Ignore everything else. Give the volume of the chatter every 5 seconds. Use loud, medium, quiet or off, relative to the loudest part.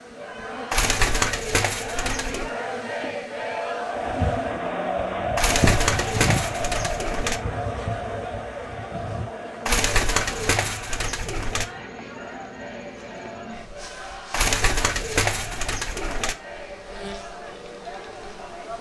loud, loud, medium, medium.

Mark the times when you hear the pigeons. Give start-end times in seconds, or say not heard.
0.7-2.5, 5.3-7.4, 9.7-11.7, 14.3-16.4.